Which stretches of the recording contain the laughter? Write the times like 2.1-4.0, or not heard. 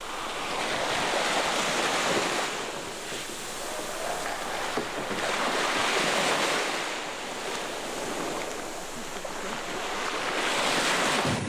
4.0-4.8.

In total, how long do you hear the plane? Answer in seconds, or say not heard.
not heard.